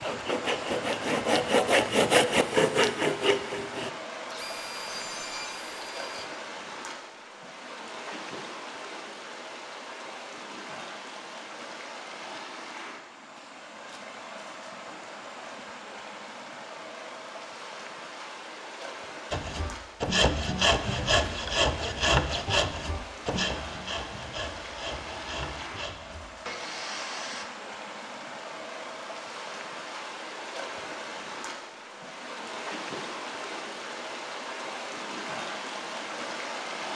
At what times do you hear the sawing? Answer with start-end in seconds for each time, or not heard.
0.0-6.3, 19.3-27.4.